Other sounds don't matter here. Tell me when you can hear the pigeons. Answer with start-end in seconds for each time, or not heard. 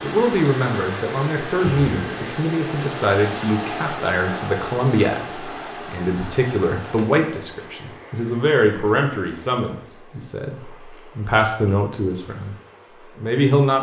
not heard.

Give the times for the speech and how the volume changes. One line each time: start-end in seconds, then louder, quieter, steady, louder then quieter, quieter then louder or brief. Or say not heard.
0.0-12.6 steady
13.2-13.7 brief.